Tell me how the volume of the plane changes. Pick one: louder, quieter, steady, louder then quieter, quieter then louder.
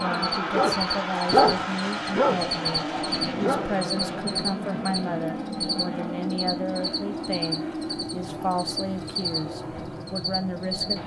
quieter.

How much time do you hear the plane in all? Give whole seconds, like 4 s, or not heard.
11 s.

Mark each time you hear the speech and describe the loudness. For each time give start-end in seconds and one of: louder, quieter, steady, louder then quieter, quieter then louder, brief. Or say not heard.
0.0-11.0 steady.